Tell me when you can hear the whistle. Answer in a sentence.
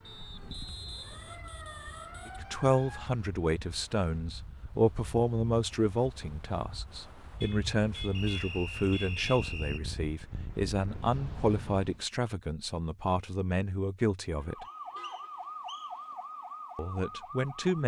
The whistle can be heard from 0.1 to 1.4 s, from 8.1 to 9.8 s and from 14.7 to 15.9 s.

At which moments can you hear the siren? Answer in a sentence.
The siren can be heard from 0.0 to 3.1 s and from 14.4 to 17.8 s.